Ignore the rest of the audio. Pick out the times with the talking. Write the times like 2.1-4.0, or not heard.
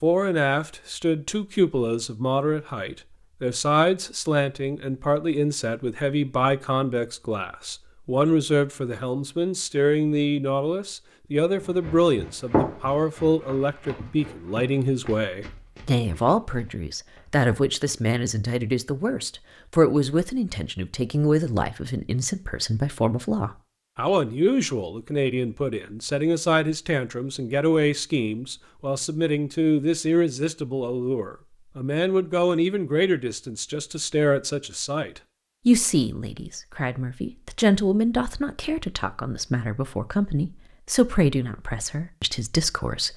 0.0-43.1.